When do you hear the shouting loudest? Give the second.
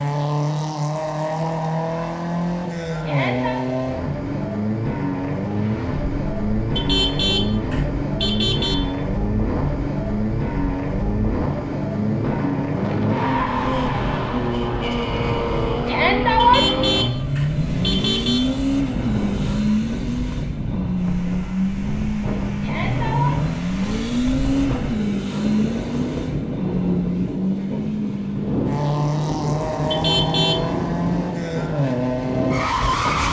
16 s.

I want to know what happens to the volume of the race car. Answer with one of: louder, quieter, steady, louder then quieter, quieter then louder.
steady.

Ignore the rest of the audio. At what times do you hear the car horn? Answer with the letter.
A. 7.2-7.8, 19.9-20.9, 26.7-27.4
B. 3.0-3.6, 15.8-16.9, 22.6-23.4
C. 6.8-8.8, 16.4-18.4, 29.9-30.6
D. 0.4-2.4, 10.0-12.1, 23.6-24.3
C.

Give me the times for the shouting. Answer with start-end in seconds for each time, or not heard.
3.0-3.6, 15.8-16.9, 22.6-23.4.